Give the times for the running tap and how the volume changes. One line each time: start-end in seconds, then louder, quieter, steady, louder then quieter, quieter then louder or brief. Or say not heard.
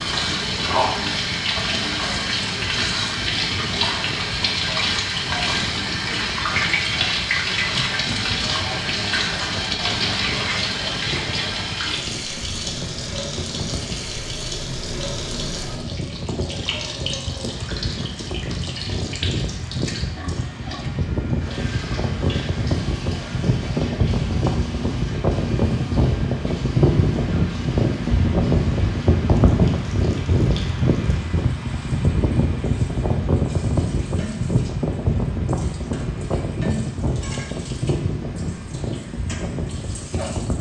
0.0-40.5 quieter.